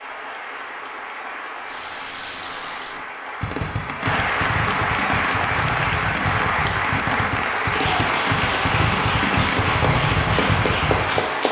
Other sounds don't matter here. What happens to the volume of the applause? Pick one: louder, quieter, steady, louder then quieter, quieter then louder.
louder.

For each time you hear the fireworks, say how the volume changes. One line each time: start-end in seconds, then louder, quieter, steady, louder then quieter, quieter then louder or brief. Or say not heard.
1.6-11.2 louder.